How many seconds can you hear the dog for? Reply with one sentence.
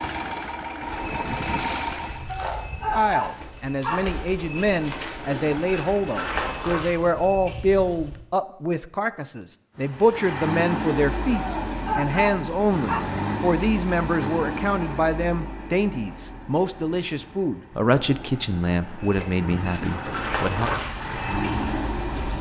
The dog can be heard for 4 seconds in total.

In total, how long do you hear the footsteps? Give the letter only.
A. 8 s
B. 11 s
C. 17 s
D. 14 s
B.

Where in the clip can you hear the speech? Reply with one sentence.
The speech can be heard from 3.0 to 20.7 s.